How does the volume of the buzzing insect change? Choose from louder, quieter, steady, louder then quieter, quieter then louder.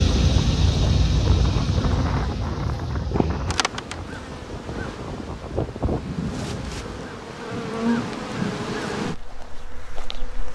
quieter then louder.